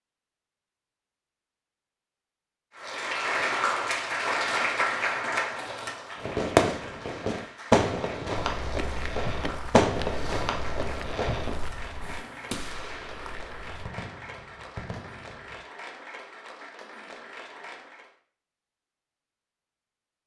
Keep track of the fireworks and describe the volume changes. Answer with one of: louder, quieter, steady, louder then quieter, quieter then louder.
quieter.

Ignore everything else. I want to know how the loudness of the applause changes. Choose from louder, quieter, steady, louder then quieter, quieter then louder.
quieter.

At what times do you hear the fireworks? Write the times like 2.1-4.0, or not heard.
6.2-15.7.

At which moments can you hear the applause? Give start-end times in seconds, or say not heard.
2.8-18.1.